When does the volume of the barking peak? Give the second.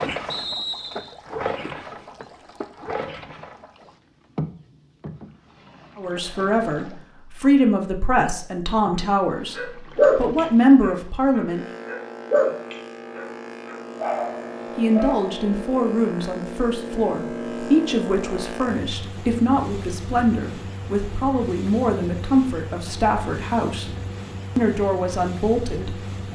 10 s.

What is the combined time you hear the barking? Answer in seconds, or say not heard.
6 s.